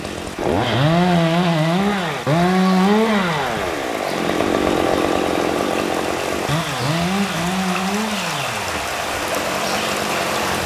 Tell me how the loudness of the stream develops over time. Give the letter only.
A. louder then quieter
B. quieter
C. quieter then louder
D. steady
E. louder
E.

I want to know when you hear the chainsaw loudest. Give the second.
3 s.